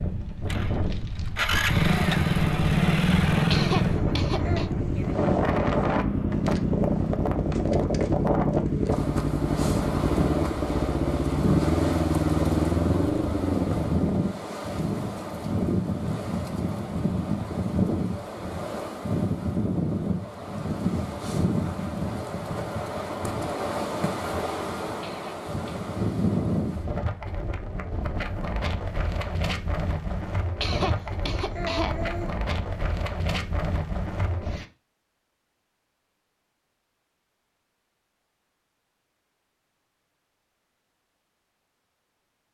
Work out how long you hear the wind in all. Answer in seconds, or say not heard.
35 s.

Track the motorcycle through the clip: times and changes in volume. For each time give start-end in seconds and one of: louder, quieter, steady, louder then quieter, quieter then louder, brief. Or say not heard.
0.0-14.1 steady.